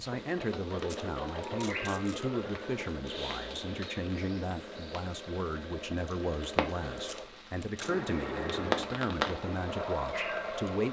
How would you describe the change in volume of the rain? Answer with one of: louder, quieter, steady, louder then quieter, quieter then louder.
quieter then louder.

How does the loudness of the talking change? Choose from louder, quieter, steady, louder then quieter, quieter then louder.
steady.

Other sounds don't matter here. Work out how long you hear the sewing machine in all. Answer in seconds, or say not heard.
11 s.